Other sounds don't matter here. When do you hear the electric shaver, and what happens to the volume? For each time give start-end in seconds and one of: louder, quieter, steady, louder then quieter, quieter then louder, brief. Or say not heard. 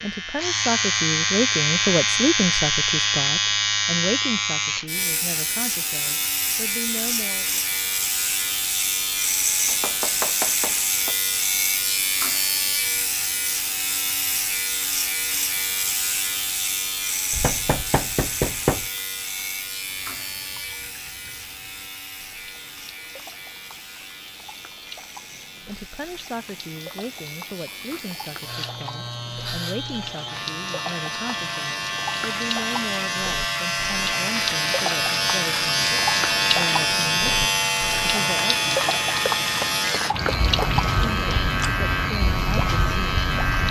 0.0-43.6 quieter then louder.